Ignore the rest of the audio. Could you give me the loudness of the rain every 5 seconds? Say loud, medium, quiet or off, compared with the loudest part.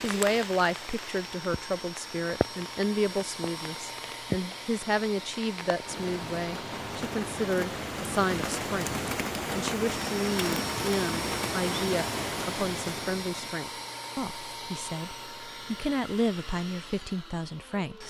loud, loud, loud, off.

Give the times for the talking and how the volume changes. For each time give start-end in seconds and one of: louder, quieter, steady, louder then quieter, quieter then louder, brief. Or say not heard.
0.0-18.0 steady.